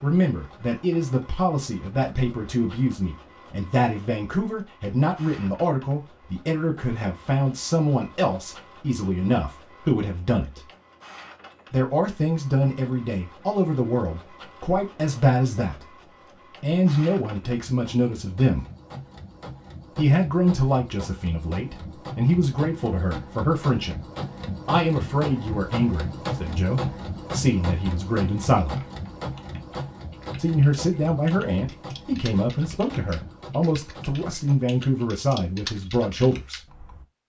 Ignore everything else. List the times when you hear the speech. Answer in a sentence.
The speech can be heard from 0.0 to 10.7 s, from 11.7 to 18.6 s, from 19.9 to 24.1 s, from 24.6 to 28.8 s and from 30.4 to 36.6 s.